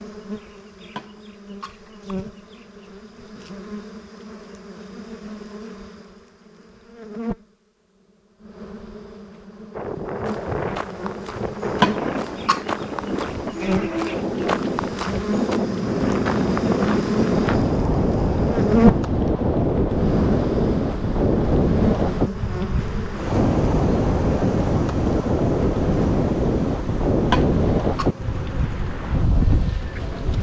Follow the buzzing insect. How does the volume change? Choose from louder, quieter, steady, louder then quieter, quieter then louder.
louder then quieter.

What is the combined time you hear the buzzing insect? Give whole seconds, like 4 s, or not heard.
30 s.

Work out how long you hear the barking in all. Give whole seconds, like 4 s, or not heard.
not heard.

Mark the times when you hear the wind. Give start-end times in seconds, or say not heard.
9.7-30.3.